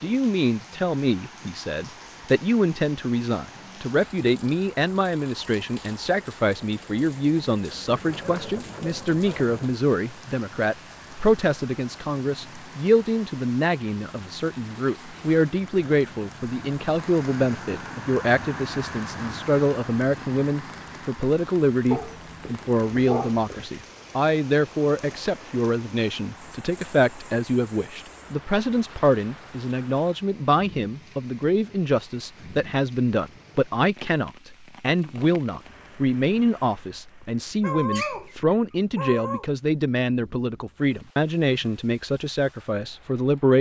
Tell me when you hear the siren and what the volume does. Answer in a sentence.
You can't hear the siren here.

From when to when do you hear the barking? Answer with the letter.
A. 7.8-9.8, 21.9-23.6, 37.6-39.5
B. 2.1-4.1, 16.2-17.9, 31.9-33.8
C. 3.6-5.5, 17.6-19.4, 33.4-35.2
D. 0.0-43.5
A.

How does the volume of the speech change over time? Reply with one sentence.
The loudness of the speech stays about the same.